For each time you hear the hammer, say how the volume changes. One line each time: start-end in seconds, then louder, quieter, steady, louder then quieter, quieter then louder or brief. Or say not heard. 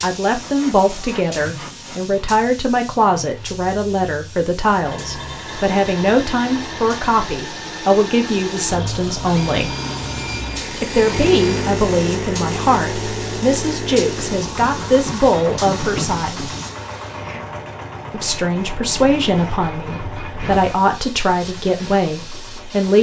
not heard.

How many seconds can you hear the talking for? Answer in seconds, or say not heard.
20 s.